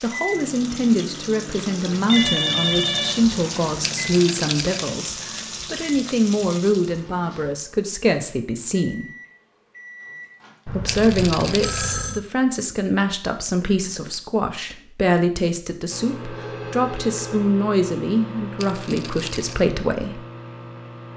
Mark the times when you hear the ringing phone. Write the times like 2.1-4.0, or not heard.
2.0-3.4, 10.7-12.2, 16.3-17.4.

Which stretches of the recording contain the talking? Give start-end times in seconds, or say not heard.
0.0-9.1, 10.7-20.2.